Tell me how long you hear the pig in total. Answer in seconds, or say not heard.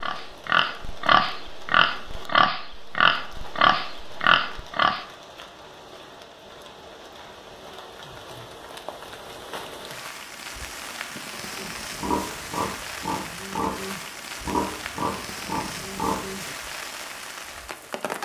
10 s.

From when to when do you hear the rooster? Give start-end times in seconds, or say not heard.
not heard.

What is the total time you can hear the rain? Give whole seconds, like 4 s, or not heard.
18 s.